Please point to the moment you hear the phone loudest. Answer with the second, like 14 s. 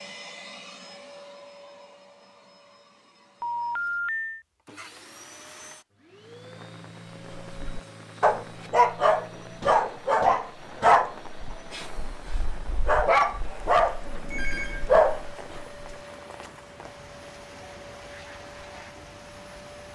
4 s.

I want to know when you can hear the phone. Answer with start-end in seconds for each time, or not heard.
3.4-4.5, 14.3-15.0.